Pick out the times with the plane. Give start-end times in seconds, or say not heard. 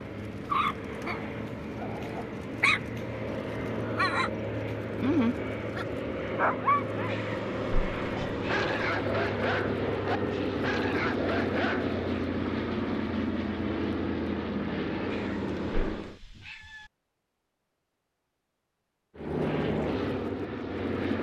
0.0-16.2, 19.1-21.1.